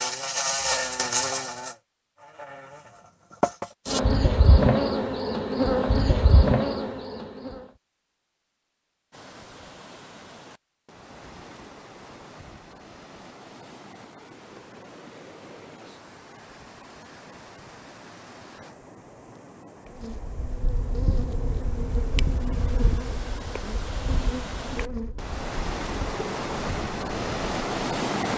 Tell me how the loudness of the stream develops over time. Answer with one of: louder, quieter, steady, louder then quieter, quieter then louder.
louder.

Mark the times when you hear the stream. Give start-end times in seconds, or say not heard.
9.1-28.3.